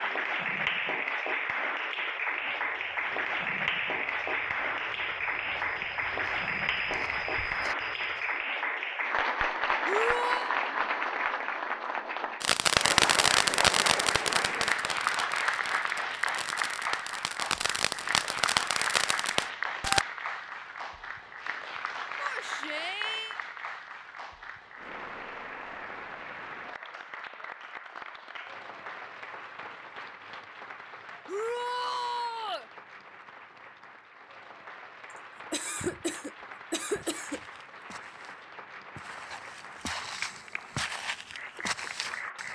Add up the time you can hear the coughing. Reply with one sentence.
The coughing can be heard for 2 seconds in total.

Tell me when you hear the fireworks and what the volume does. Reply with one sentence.
The fireworks can be heard from 12.4 to 20.1 s, getting quieter then louder.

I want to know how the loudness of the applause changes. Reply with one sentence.
The volume of the applause goes down.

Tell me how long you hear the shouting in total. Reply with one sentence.
The shouting can be heard for 3 seconds in total.